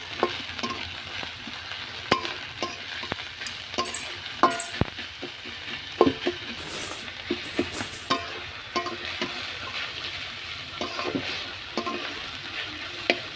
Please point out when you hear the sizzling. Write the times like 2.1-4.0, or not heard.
0.0-13.3.